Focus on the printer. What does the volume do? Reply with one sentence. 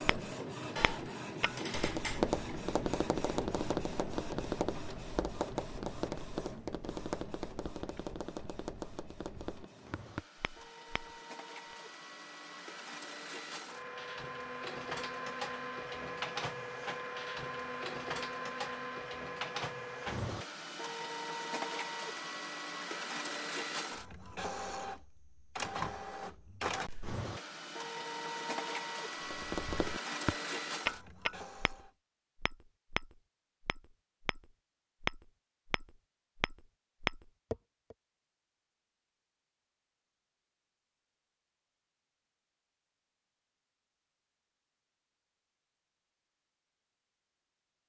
The loudness of the printer goes down, then up.